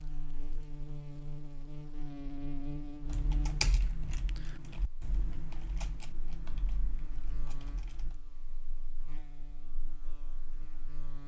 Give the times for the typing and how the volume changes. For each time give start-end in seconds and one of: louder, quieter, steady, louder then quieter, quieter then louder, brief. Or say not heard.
3.0-8.2 quieter.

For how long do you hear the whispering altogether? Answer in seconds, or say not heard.
not heard.